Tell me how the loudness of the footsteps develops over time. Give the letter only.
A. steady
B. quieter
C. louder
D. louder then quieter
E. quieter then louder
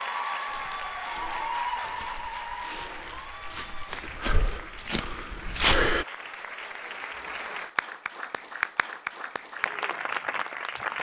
C.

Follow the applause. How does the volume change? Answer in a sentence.
The loudness of the applause goes down, then up.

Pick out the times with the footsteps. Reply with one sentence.
The footsteps can be heard from 0.5 to 6.0 s.